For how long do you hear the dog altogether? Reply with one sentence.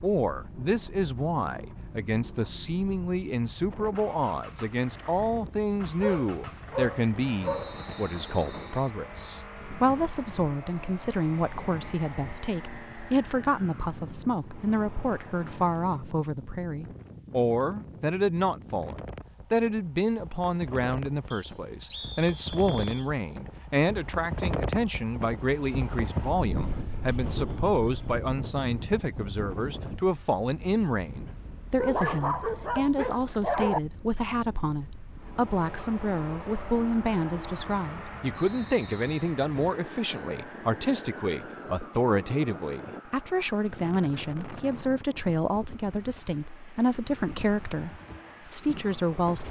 The dog can be heard for 4 seconds in total.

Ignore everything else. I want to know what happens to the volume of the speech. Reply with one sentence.
The loudness of the speech stays about the same.